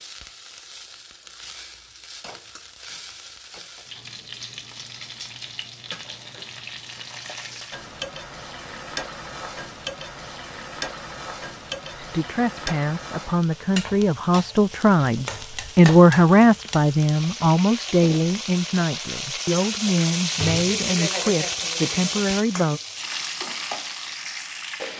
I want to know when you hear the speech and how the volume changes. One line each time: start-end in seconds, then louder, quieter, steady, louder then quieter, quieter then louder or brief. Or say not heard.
11.9-22.8 louder then quieter.